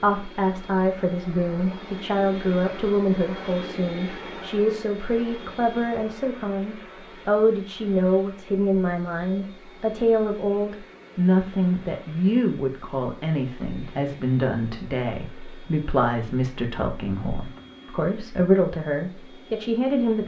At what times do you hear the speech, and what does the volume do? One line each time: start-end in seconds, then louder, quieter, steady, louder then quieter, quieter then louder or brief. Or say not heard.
0.0-20.2 steady.